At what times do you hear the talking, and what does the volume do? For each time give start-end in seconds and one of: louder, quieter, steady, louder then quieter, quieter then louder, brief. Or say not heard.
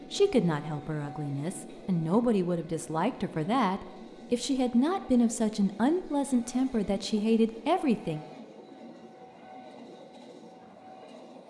0.1-8.2 louder.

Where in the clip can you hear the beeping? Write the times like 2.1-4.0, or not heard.
not heard.